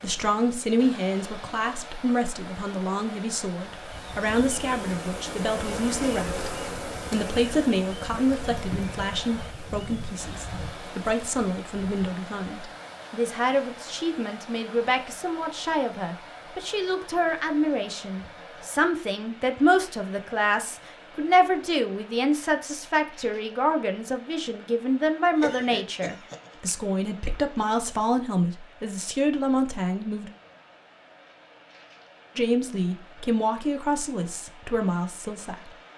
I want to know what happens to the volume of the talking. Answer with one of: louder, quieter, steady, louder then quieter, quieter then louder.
steady.